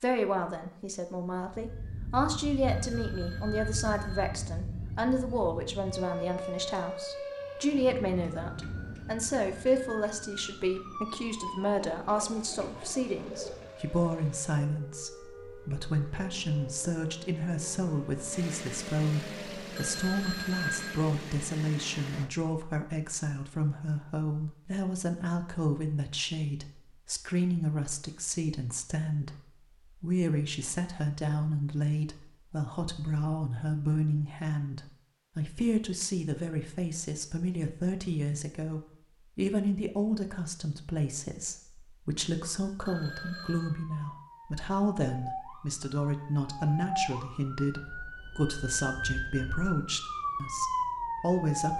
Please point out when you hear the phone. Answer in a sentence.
You can hear the phone from 2.6 to 4.3 s, from 19.8 to 21.0 s and from 42.9 to 43.8 s.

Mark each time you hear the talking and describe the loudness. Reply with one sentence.
The talking can be heard from 0.0 to 51.7 s, at a steady volume.